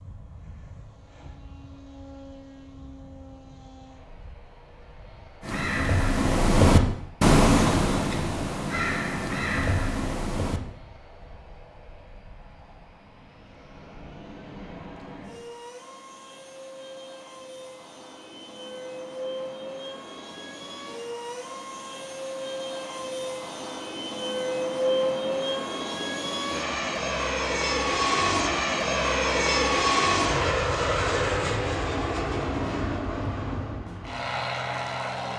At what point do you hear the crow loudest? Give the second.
7 s.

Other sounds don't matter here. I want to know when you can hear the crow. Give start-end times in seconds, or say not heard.
5.4-10.6.